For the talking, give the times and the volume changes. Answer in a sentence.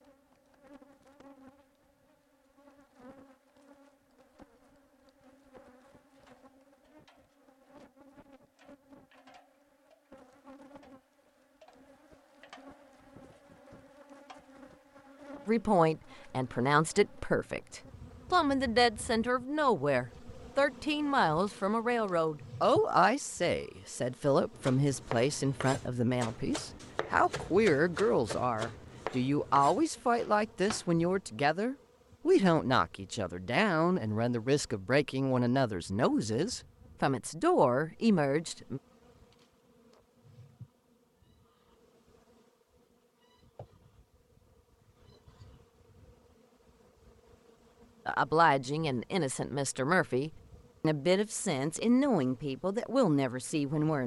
The talking can be heard from 15.4 to 38.8 s, at a steady volume; and from 48.0 to 54.0 s, at a steady volume.